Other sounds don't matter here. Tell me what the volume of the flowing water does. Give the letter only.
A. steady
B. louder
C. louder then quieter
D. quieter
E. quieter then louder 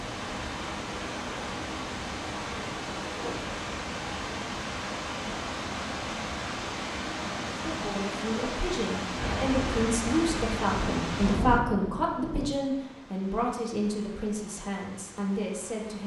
D.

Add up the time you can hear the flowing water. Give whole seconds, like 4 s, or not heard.
16 s.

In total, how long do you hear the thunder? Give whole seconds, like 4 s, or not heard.
3 s.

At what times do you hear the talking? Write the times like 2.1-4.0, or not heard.
7.5-16.0.